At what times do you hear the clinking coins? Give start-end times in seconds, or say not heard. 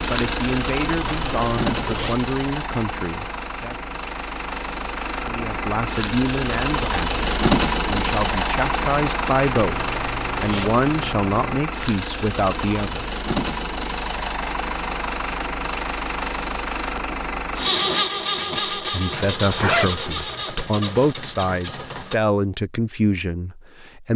not heard.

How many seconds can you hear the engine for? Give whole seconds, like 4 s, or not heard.
22 s.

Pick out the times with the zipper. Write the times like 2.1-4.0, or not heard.
1.1-2.1, 9.6-11.6, 19.1-20.5.